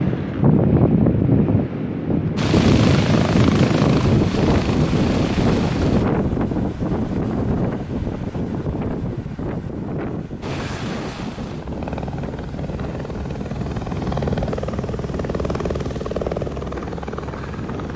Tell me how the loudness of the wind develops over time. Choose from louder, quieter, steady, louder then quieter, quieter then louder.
quieter.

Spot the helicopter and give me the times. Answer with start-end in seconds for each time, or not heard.
2.4-6.0, 10.4-17.9.